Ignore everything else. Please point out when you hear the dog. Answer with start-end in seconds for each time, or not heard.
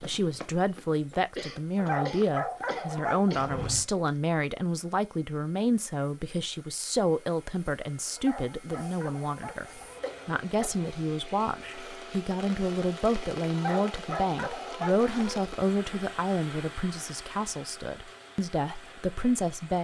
1.8-3.6, 8.2-10.1, 13.5-15.4.